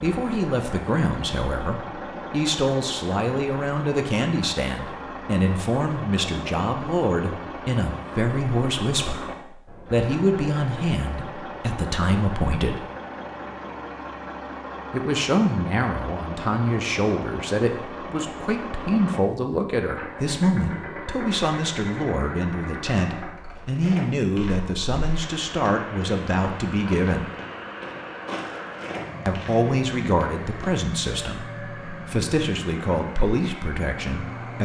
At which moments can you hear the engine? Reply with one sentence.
You can hear the engine from 0.0 to 34.5 s.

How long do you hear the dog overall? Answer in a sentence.
The dog can't be heard in this clip.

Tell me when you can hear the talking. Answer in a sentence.
You can hear the talking from 0.0 to 12.8 s, from 14.9 to 27.2 s and from 29.2 to 34.5 s.